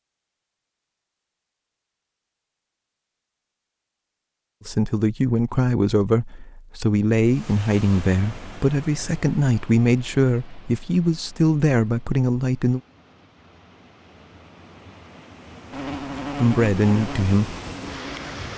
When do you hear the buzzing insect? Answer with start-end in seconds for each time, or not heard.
15.7-18.4.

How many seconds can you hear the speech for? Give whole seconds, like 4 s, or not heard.
9 s.